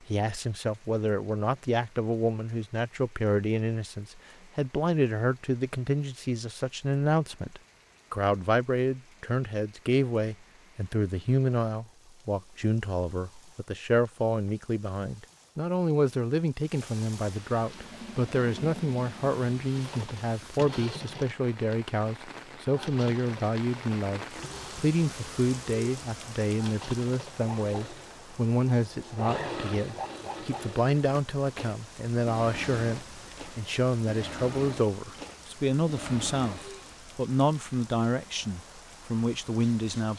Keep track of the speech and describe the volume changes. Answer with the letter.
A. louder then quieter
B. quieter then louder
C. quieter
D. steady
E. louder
D.